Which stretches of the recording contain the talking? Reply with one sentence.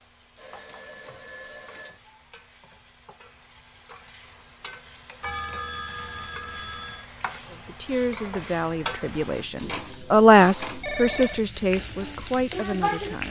The talking can be heard from 7.5 to 13.2 s.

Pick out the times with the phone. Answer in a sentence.
You can hear the phone from 0.3 to 2.0 s, from 5.2 to 7.1 s and from 10.8 to 11.4 s.